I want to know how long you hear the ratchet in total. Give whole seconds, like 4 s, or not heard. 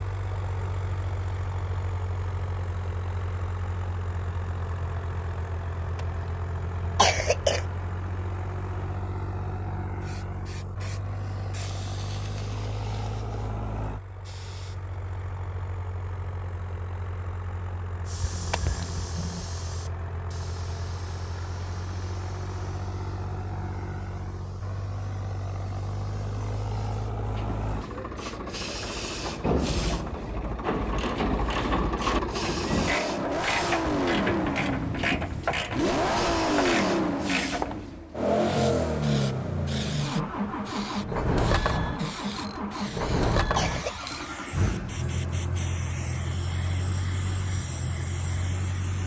7 s.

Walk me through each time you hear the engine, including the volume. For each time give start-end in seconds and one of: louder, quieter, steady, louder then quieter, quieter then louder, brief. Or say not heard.
0.0-49.0 louder.